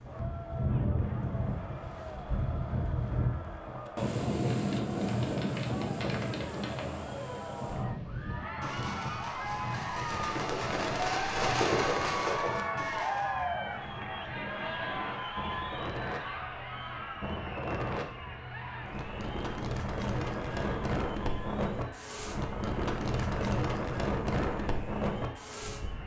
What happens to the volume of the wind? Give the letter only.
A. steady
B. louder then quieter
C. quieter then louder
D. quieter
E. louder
C.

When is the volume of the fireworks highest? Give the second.
12 s.